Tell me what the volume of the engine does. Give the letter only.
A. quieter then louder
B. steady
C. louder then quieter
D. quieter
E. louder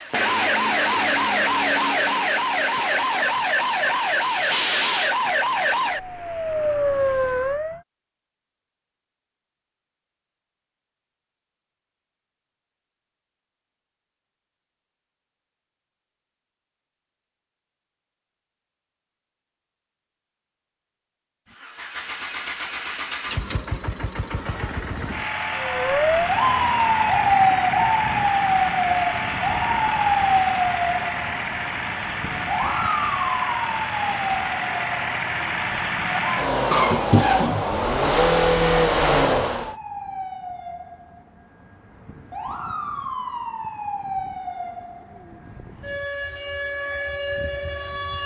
E.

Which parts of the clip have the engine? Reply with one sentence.
You can hear the engine from 21.5 to 39.8 s.